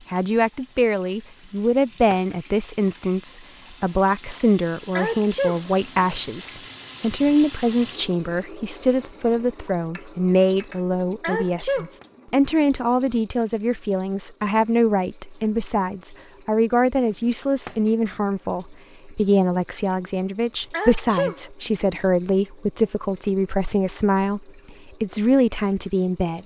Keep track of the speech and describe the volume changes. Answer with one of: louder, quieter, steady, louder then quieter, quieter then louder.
steady.